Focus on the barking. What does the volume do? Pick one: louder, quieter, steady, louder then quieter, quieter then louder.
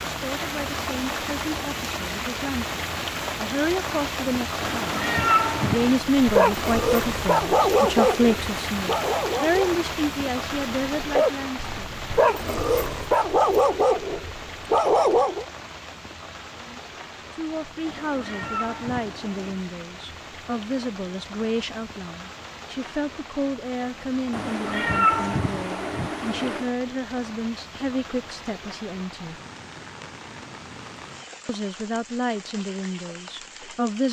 steady.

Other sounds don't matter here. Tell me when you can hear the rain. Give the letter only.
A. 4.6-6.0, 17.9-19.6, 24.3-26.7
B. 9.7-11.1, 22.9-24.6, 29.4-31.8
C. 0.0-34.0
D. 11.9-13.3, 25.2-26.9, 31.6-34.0
C.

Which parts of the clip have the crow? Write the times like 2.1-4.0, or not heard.
not heard.